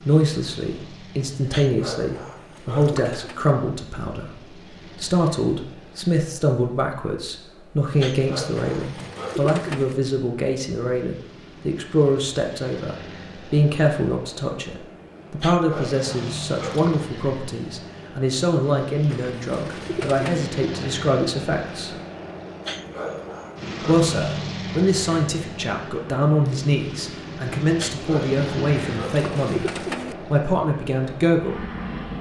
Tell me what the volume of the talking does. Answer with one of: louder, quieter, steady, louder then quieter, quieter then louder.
steady.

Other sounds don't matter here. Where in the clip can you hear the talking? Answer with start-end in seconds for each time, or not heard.
0.1-21.9, 23.9-31.6.